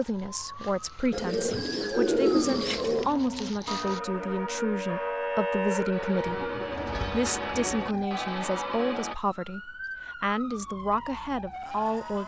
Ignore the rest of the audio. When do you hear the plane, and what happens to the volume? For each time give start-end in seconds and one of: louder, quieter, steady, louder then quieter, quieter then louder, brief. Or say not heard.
not heard.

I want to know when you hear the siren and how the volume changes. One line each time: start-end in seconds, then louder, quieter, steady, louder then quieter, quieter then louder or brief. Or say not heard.
0.0-12.2 louder then quieter.